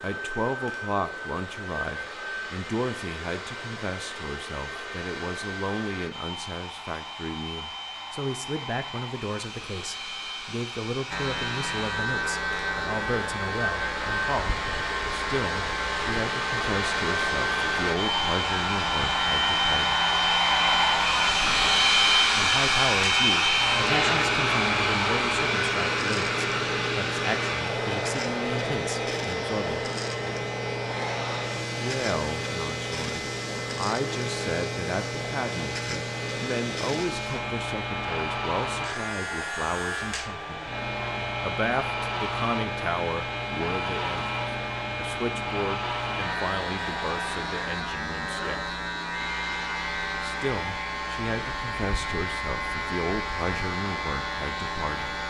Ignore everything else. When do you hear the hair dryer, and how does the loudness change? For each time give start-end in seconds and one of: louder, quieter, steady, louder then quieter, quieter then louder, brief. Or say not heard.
0.0-55.2 louder then quieter.